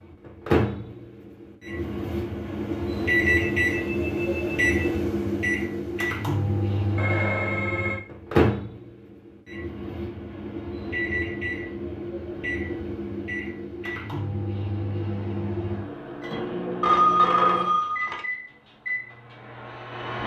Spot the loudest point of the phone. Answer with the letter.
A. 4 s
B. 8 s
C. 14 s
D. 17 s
D.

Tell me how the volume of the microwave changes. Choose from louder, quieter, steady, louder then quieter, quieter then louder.
quieter.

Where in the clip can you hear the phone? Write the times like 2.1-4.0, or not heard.
3.2-5.0, 7.0-8.0, 16.8-18.2.